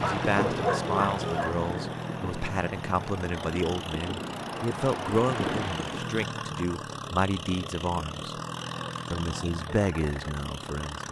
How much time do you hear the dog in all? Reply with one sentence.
The dog can be heard for 2 seconds in total.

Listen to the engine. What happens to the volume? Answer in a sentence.
The volume of the engine stays about the same.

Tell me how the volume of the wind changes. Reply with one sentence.
The volume of the wind goes down, then up.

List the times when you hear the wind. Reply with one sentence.
The wind can be heard from 0.0 to 6.2 s.